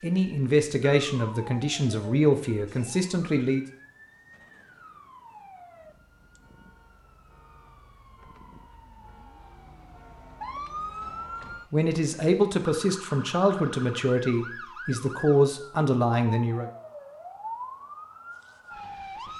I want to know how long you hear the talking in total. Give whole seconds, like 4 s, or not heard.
9 s.